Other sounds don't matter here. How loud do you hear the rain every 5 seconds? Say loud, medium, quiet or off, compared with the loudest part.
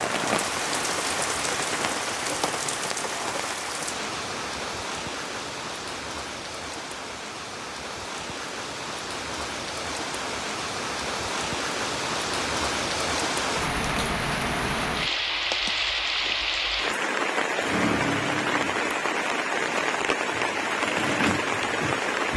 loud, medium, loud, loud, loud.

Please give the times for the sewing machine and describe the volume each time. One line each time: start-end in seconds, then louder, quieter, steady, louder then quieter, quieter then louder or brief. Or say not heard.
17.6-22.3 quieter then louder.